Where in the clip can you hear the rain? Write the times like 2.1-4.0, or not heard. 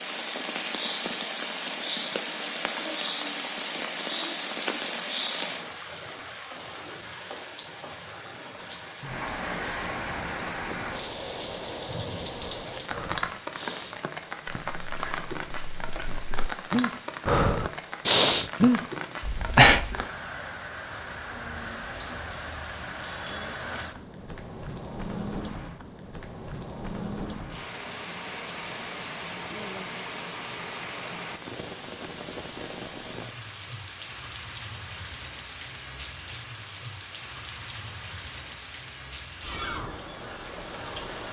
0.0-41.2.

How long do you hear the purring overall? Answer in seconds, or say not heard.
not heard.